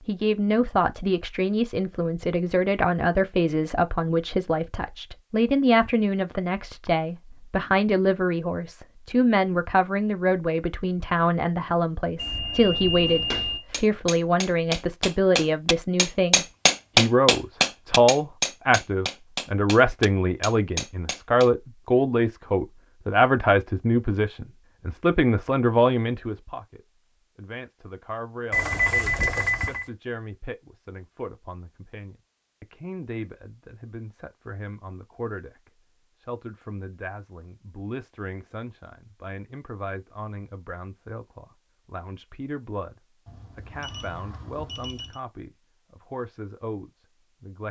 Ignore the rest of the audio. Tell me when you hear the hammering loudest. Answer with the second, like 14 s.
17 s.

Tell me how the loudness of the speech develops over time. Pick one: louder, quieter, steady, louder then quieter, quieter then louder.
quieter.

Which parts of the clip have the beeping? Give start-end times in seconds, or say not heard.
12.2-13.7, 28.5-29.9, 43.2-45.2.